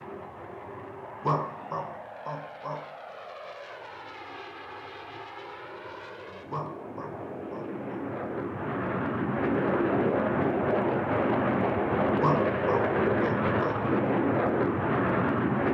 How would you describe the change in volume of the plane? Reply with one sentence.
The volume of the plane goes up.